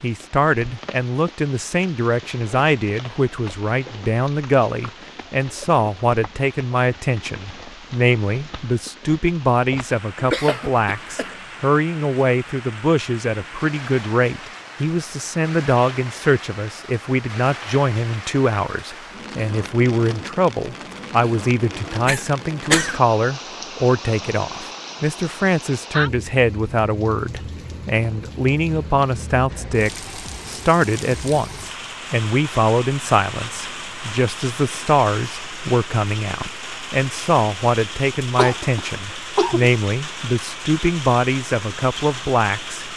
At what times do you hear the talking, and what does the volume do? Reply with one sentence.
You can hear the talking from 0.0 to 42.9 s, at a steady volume.